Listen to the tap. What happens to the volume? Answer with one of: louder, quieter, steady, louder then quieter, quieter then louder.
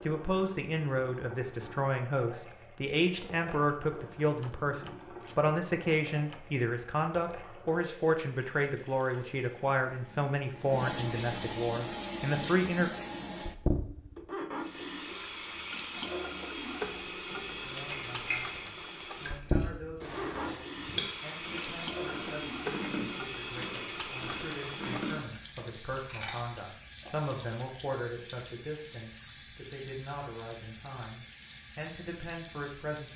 louder then quieter.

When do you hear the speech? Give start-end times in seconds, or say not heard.
0.1-12.9, 17.4-33.1.